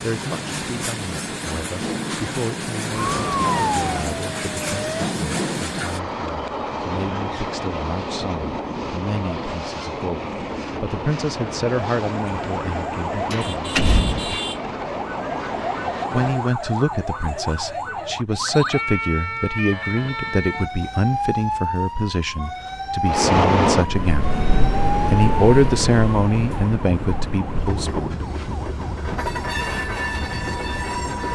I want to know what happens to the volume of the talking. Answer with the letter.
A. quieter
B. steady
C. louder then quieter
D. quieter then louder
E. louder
E.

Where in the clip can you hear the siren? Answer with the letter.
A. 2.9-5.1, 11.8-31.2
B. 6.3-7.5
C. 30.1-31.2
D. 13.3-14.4
A.